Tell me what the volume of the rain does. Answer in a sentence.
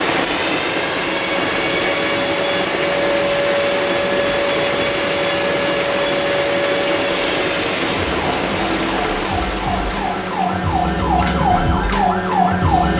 The loudness of the rain goes down.